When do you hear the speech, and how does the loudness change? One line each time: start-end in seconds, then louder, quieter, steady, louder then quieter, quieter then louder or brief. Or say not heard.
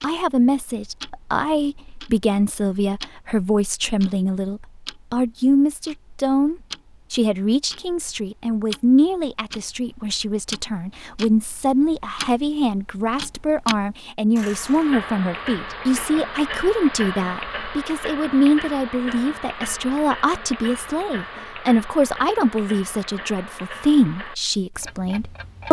0.0-25.6 steady.